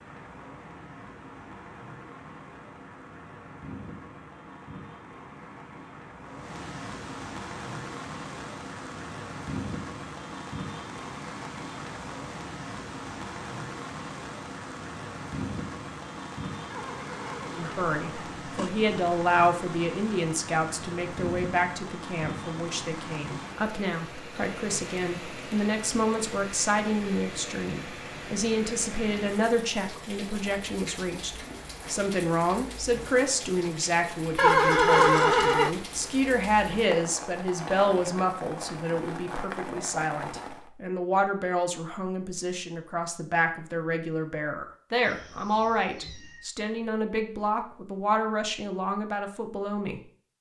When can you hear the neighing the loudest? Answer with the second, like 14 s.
35 s.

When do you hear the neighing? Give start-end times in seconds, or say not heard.
16.7-18.7, 34.4-35.7.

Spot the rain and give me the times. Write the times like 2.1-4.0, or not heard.
0.0-40.7.